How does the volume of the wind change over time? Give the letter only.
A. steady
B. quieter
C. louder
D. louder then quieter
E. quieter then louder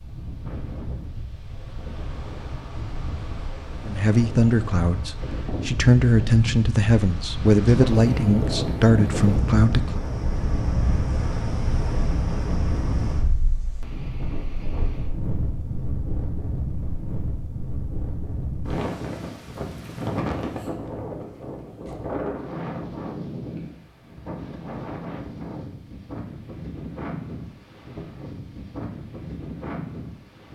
D.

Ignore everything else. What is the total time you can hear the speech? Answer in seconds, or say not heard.
6 s.